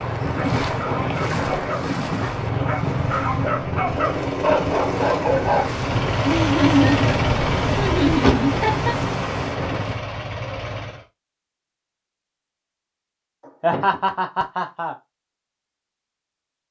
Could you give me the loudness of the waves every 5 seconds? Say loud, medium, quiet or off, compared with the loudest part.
loud, loud, off, off.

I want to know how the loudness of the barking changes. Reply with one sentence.
The loudness of the barking goes up.